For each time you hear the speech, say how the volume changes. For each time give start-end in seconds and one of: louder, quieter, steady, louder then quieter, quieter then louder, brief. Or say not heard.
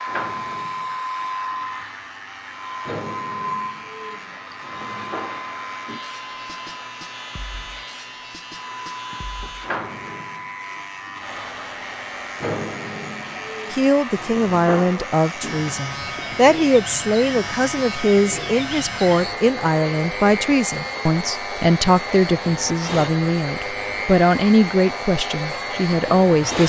13.7-26.6 steady.